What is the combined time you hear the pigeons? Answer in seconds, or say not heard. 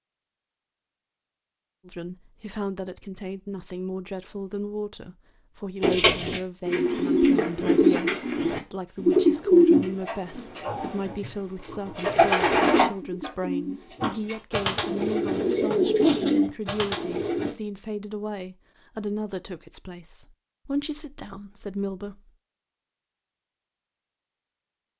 12 s.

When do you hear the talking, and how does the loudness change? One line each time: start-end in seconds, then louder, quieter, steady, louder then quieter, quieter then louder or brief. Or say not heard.
1.9-22.3 steady.